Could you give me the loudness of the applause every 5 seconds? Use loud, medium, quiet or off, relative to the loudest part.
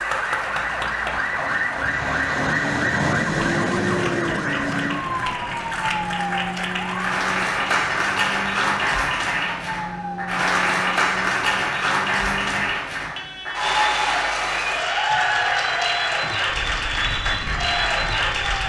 medium, loud, loud, loud.